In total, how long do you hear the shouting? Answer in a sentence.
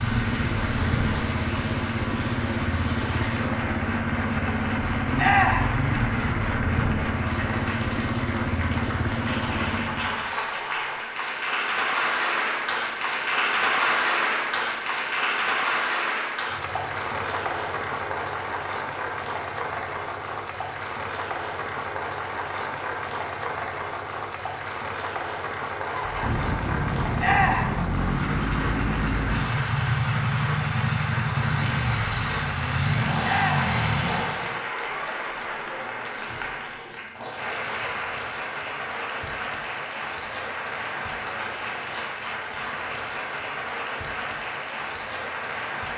The shouting can be heard for 2 seconds in total.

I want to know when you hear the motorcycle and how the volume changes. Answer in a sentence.
The motorcycle can be heard from 0.0 to 10.2 s, at a steady volume; and from 25.9 to 34.6 s, at a steady volume.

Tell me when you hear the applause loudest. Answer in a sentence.
The volume of the applause peaks at 14 seconds.